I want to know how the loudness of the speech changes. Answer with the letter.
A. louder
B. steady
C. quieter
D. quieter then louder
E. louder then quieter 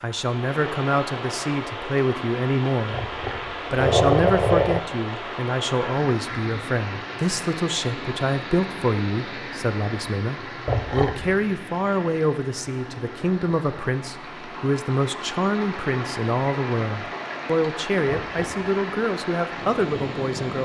B.